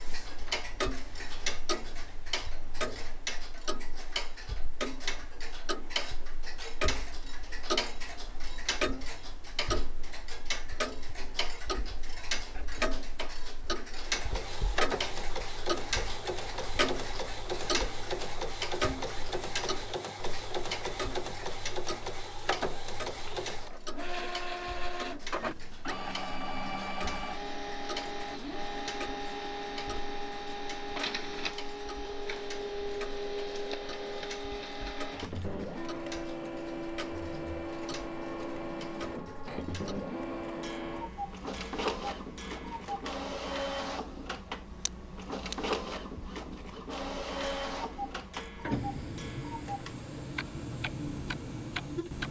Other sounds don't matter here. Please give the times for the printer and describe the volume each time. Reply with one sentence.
The printer can be heard from 14.1 to 52.2 s, at a steady volume.